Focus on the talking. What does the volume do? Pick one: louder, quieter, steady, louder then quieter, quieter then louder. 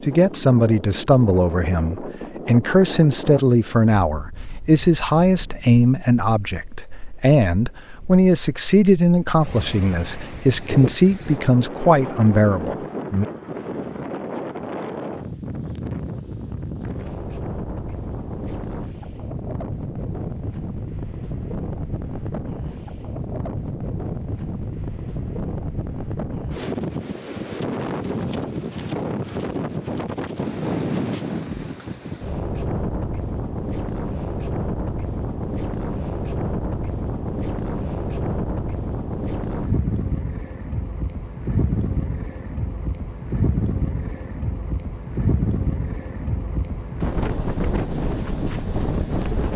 steady.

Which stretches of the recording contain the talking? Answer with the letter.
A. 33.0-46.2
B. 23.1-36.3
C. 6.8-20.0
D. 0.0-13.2
D.